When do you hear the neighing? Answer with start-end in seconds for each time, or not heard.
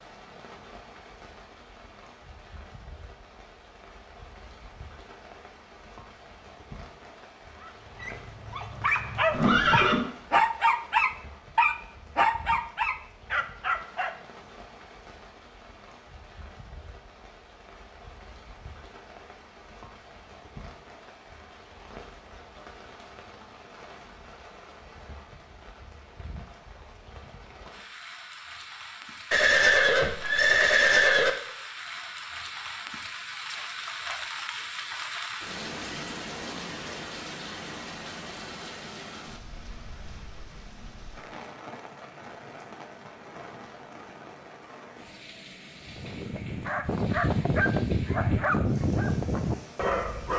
9.3-10.1, 29.3-31.3.